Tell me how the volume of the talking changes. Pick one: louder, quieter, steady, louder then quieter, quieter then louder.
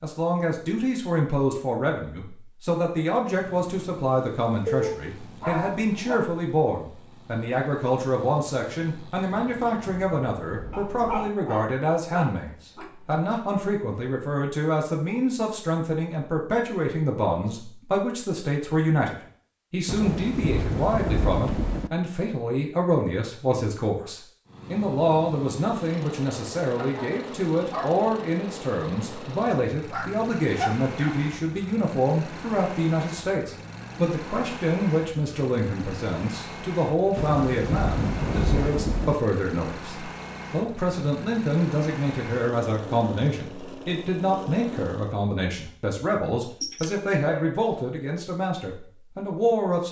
steady.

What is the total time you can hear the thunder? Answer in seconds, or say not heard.
6 s.